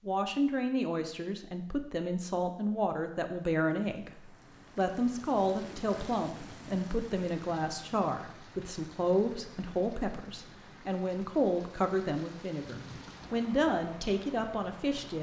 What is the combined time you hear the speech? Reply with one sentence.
You can hear the speech for 15 seconds altogether.